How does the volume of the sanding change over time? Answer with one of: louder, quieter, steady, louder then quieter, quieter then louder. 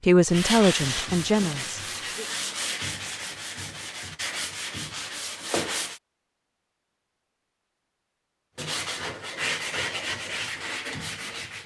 steady.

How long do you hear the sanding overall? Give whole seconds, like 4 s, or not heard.
9 s.